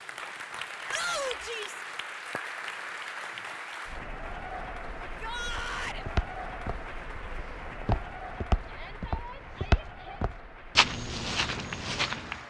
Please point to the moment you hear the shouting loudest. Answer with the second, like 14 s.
1 s.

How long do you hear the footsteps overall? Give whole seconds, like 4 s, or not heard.
7 s.